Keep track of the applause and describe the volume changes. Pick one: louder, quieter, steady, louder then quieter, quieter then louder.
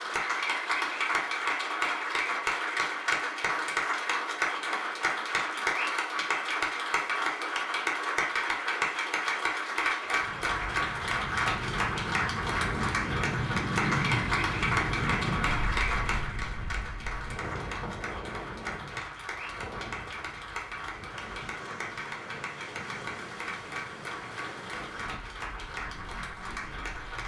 quieter.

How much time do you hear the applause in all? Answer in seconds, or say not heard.
27 s.